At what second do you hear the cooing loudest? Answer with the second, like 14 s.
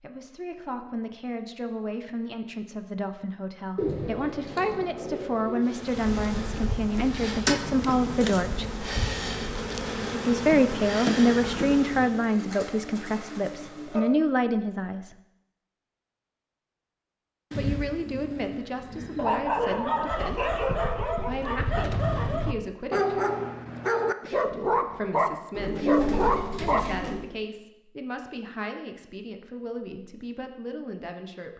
26 s.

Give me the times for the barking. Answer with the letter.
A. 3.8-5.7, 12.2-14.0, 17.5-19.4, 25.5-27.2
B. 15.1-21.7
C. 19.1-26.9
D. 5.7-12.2
C.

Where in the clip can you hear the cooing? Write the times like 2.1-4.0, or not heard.
3.8-5.7, 12.2-14.0, 17.5-19.4, 25.5-27.2.